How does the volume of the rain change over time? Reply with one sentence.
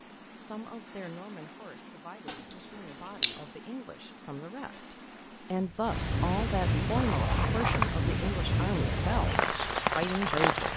The volume of the rain goes up.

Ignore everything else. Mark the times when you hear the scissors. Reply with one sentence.
The scissors can be heard from 2.2 to 3.5 s and from 7.0 to 8.0 s.